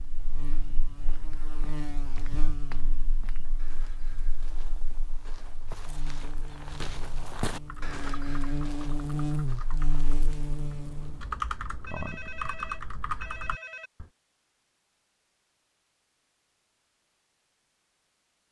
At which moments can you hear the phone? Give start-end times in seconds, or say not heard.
11.8-13.9.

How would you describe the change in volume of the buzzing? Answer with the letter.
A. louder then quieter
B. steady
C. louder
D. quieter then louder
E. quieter
D.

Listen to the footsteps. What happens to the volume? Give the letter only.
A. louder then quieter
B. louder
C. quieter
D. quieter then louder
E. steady
A.